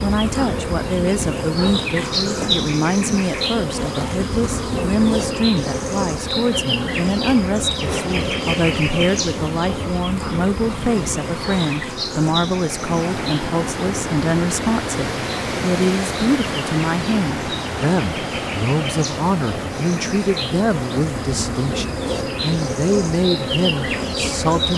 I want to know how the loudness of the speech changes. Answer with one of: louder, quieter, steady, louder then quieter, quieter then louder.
steady.